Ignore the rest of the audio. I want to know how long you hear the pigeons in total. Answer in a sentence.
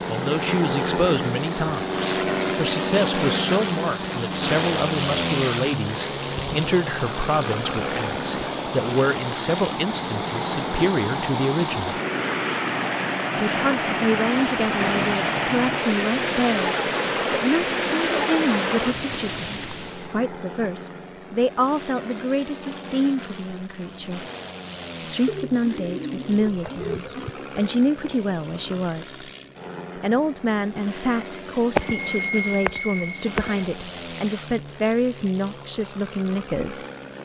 The pigeons can be heard for 2 seconds in total.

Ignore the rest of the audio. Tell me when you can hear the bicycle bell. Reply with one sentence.
You can hear the bicycle bell from 31.8 to 33.6 s.